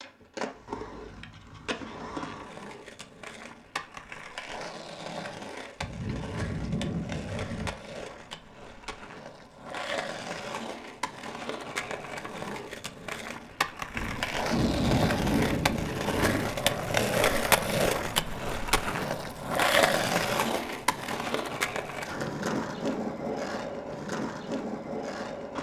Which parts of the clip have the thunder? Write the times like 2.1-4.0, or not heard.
5.8-7.8, 13.9-16.5.